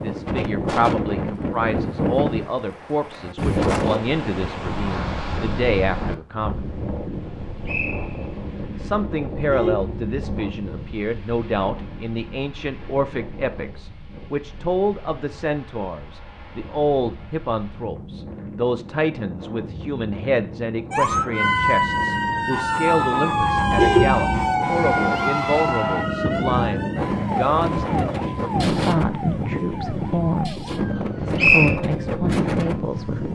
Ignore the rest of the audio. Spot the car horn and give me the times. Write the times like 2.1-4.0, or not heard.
9.3-10.9, 23.6-24.5.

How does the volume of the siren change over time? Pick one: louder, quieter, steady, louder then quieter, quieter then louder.
quieter.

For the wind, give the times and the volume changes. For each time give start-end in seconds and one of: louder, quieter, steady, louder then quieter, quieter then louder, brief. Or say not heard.
0.0-33.3 quieter then louder.